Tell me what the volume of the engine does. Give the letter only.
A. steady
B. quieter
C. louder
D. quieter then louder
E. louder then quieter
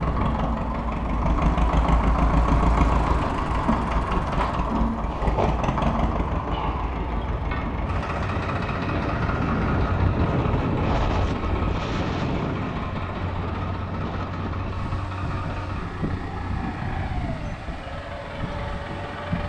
B.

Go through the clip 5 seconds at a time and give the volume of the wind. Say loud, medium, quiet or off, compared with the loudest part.
medium, loud, loud, medium.